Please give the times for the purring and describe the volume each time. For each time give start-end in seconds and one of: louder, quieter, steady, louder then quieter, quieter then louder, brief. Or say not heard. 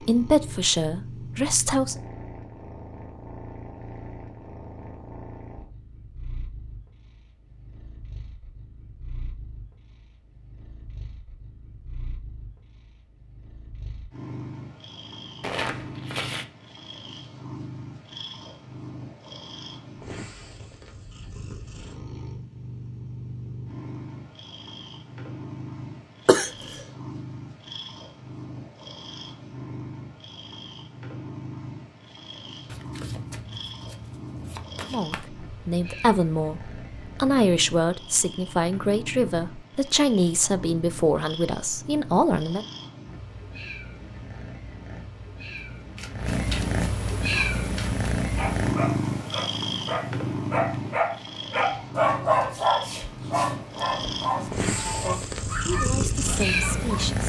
0.0-57.2 louder.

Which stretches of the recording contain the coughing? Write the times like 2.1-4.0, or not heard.
26.2-26.8.